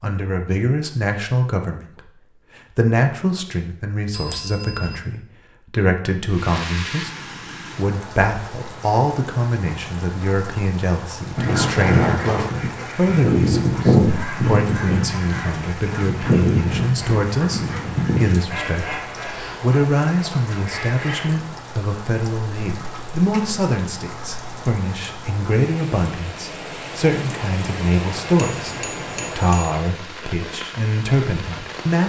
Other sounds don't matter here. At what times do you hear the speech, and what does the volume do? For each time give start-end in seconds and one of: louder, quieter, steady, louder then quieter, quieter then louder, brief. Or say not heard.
0.0-2.1 brief
2.8-32.0 steady.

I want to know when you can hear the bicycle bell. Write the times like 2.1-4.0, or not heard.
4.1-5.0, 11.4-12.6, 28.4-29.8.